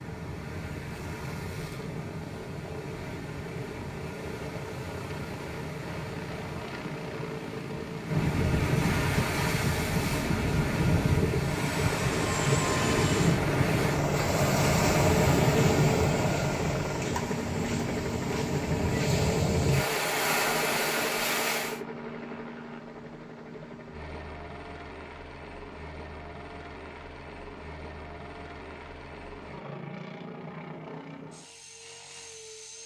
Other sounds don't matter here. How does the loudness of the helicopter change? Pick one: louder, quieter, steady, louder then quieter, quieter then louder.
louder then quieter.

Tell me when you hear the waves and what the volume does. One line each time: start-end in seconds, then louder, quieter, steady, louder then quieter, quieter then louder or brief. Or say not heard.
0.0-21.8 louder.